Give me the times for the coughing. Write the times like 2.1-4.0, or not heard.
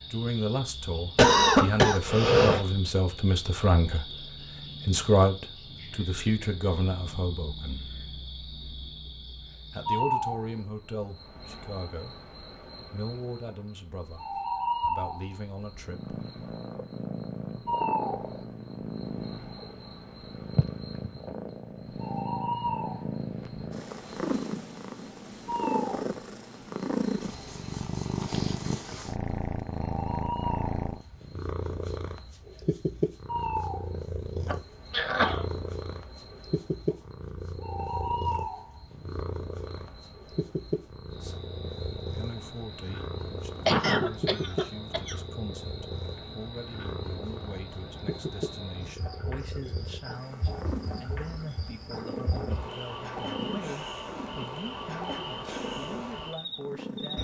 1.1-2.6, 34.5-35.4, 43.6-45.1.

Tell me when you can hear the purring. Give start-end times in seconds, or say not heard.
15.8-57.1.